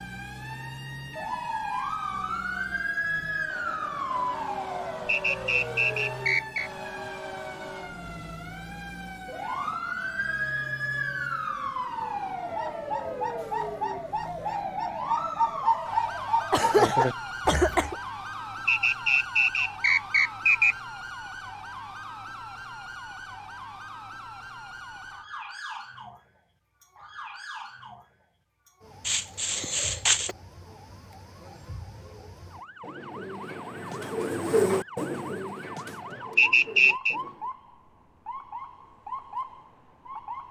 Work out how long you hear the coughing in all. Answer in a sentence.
The coughing can be heard for 3 seconds in total.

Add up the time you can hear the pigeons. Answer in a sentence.
You can hear the pigeons for 11 seconds altogether.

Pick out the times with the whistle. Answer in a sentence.
You can hear the whistle from 5.0 to 6.7 s, from 18.6 to 20.8 s and from 36.4 to 37.1 s.